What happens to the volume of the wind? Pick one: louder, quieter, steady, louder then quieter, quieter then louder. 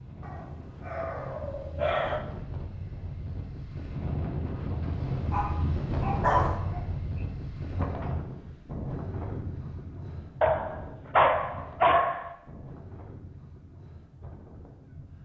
louder then quieter.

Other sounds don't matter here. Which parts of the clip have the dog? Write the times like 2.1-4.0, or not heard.
0.2-2.2, 5.3-6.8, 10.4-12.3.